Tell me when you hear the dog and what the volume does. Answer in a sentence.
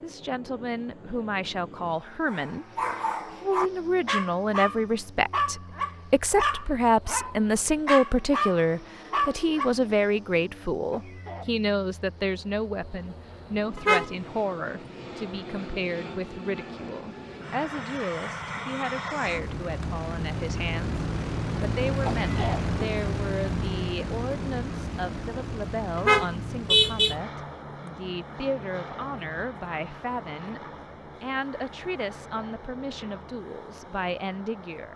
The dog can be heard from 2.2 to 9.7 s, at a steady volume.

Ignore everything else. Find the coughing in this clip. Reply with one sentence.
You can hear the coughing from 10.9 to 11.7 s and from 22.0 to 22.7 s.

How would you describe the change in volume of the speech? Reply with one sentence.
The loudness of the speech goes down.